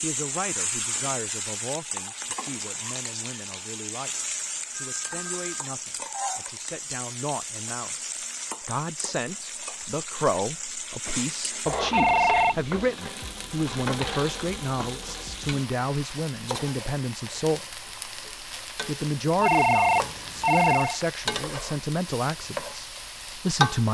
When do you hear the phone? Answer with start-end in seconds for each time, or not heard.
4.7-5.7, 11.9-12.6, 19.4-21.0.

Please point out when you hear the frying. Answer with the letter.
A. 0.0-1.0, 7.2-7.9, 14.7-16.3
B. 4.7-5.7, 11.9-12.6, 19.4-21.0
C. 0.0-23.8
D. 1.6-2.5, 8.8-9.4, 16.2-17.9
C.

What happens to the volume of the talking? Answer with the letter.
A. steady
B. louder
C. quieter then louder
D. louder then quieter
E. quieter
B.